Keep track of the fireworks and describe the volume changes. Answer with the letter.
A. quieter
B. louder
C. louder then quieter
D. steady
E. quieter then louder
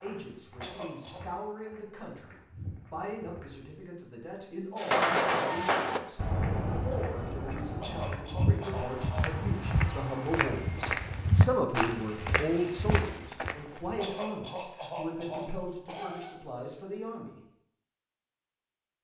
A.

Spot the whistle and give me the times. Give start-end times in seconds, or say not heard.
not heard.